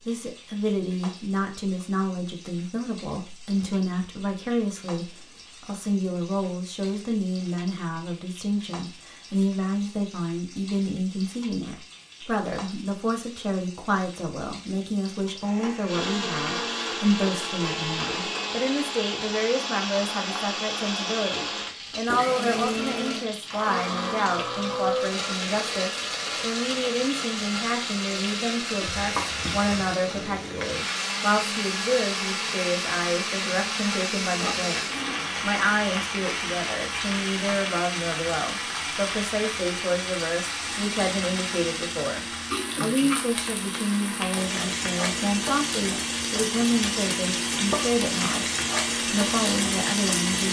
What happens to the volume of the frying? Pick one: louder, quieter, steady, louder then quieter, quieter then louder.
louder.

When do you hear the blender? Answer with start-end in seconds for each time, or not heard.
15.8-50.4.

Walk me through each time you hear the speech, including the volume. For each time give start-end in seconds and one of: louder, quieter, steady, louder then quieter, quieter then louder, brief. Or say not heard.
0.1-48.5 steady
49.0-50.4 brief.